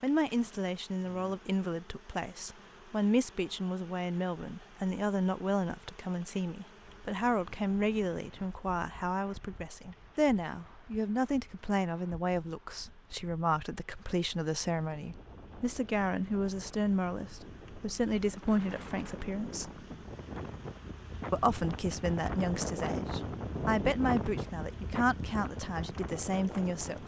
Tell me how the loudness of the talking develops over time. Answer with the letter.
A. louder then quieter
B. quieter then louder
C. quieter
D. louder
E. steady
E.